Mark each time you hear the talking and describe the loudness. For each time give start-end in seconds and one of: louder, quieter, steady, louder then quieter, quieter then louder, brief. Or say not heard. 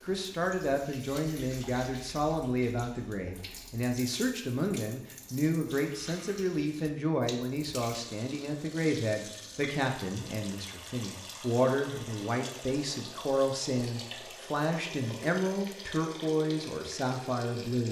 0.0-17.8 steady.